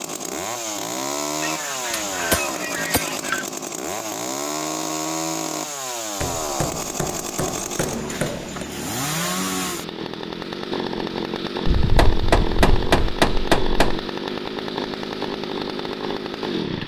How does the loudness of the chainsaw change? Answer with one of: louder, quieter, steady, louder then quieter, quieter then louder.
steady.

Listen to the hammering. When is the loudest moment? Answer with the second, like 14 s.
13 s.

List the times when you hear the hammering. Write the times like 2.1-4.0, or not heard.
1.9-3.5, 6.2-8.7, 11.8-14.1.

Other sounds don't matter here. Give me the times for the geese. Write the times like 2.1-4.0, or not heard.
1.4-3.5, 11.7-13.1.